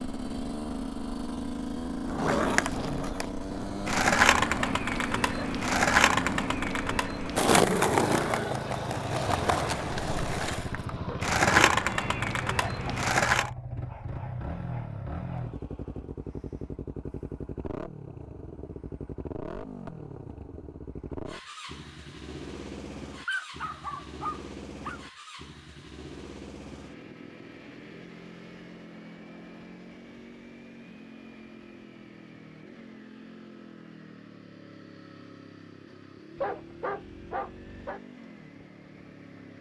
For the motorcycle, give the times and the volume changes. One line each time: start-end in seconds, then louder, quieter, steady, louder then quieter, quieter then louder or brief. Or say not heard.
0.0-39.5 quieter.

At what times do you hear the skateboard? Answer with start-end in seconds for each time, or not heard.
2.0-13.5.